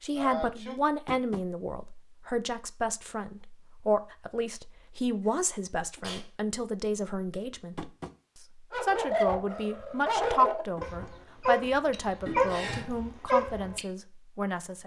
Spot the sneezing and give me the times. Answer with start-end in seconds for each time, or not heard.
0.1-0.8, 5.4-6.2, 12.2-12.9.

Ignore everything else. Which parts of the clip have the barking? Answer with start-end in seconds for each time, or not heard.
8.7-13.8.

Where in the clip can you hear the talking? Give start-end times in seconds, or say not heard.
0.0-7.9, 8.8-14.8.